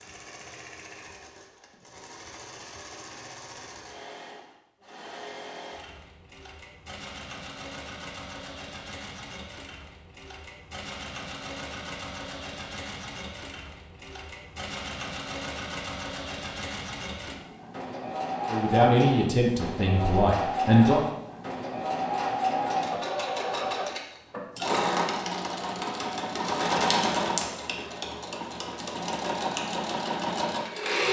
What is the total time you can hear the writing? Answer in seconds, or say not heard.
not heard.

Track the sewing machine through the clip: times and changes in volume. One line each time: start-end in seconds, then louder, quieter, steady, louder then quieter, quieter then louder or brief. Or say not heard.
0.0-31.0 louder.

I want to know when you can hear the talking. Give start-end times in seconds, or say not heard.
18.4-21.1.